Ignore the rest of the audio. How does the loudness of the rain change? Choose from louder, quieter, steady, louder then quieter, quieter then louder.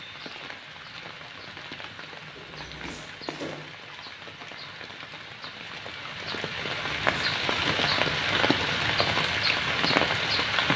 louder.